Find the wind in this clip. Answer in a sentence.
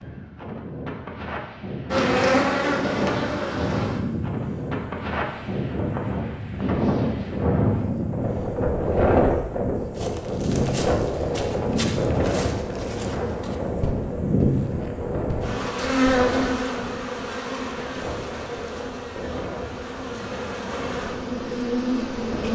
You can hear the wind from 0.0 to 22.5 s.